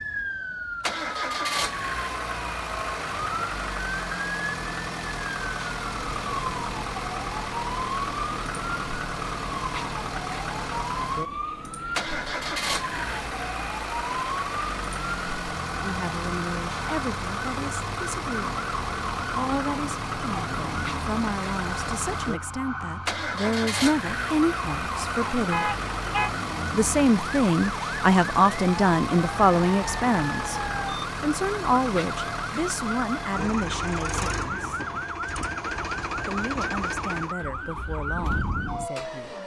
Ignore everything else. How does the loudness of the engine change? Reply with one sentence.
The loudness of the engine stays about the same.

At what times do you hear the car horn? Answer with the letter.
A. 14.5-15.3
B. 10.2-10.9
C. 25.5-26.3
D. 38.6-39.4
C.